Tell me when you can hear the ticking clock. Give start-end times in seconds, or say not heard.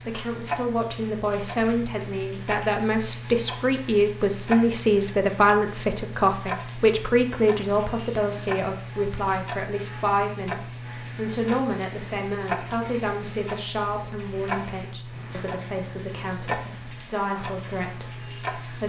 0.0-18.8.